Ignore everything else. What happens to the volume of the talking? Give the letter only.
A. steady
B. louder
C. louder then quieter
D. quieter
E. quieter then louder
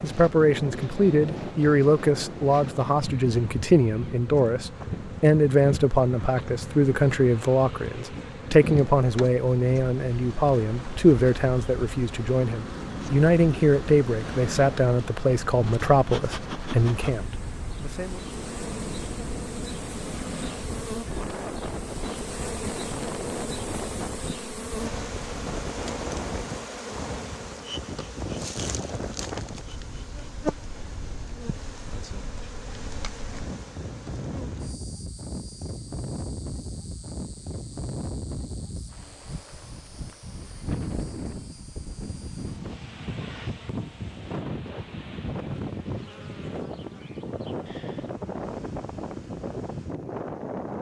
A.